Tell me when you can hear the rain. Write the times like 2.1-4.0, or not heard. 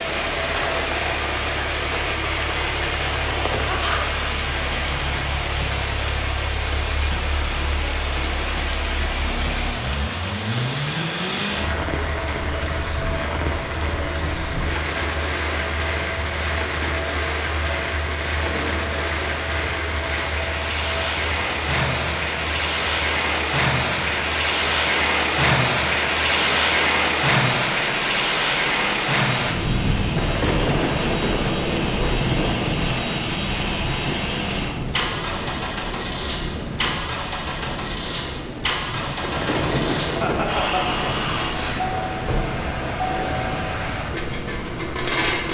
0.0-45.4.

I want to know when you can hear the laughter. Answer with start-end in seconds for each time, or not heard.
3.6-4.2, 40.2-41.0.